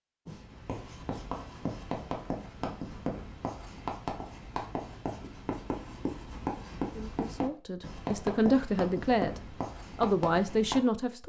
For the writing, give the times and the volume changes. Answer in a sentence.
The writing can be heard from 0.2 to 10.8 s, at a steady volume.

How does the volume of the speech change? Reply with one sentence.
The loudness of the speech goes up.